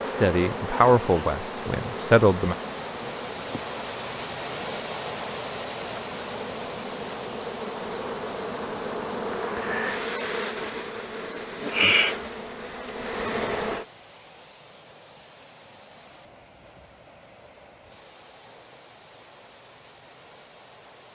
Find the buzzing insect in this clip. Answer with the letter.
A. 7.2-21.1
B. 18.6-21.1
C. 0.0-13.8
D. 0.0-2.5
C.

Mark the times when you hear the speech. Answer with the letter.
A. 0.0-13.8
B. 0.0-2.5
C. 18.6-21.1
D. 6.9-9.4
B.